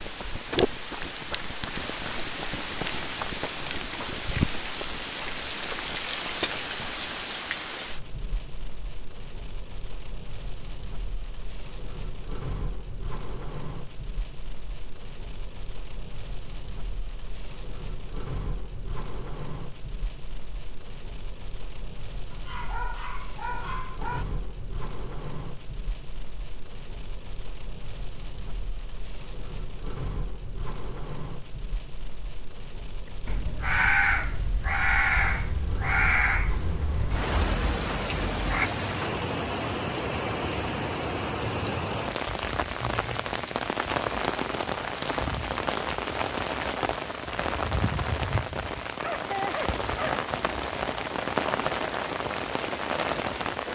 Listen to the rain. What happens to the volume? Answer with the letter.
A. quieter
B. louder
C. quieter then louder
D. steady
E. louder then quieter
C.